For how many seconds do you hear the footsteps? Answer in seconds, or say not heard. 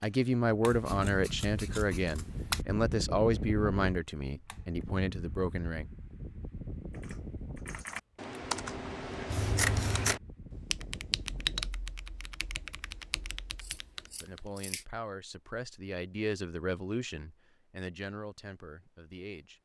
not heard.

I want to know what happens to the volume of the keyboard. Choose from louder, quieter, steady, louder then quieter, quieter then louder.
quieter.